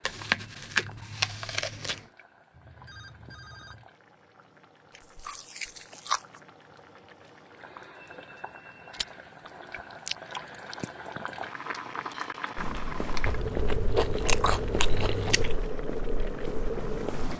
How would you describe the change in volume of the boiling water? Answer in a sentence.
The loudness of the boiling water goes up.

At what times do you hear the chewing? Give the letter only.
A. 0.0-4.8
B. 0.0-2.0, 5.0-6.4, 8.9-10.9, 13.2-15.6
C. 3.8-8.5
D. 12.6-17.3
B.